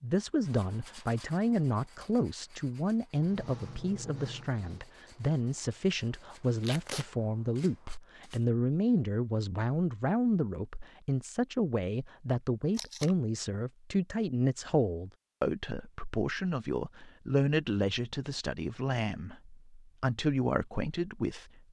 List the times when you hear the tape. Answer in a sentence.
You can hear the tape from 6.6 to 7.0 s and from 12.8 to 13.2 s.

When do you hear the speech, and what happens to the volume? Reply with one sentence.
The speech can be heard from 0.0 to 21.6 s, at a steady volume.